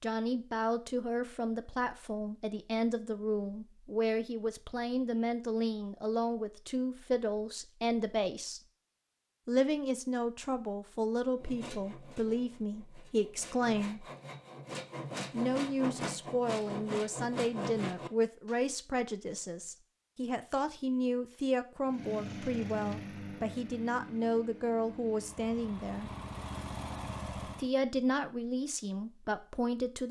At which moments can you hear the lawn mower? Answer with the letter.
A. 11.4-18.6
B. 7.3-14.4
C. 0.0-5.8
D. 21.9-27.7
D.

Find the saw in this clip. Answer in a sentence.
The saw can be heard from 11.4 to 18.6 s.